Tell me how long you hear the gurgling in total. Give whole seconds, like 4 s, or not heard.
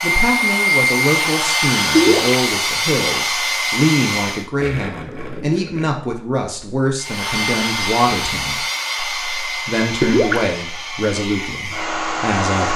2 s.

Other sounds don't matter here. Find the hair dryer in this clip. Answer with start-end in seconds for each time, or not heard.
0.0-4.5, 7.0-12.7.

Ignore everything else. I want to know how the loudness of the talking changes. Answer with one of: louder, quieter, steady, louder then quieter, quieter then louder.
steady.